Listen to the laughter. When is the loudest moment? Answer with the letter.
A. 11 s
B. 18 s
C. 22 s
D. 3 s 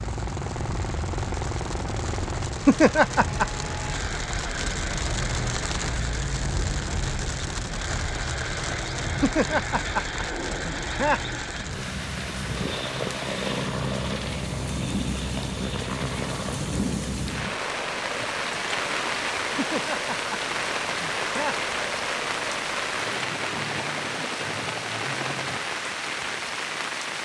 D.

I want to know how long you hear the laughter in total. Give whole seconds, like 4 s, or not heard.
5 s.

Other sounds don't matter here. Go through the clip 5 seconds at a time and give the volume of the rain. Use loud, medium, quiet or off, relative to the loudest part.
medium, loud, medium, loud, loud, loud.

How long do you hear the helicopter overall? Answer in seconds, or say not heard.
26 s.